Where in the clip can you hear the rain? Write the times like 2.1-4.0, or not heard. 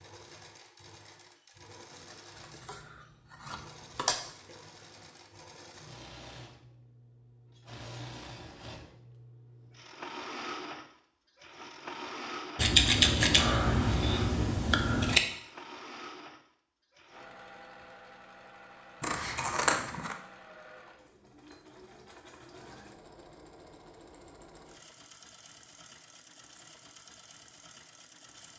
not heard.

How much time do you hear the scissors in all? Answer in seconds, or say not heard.
6 s.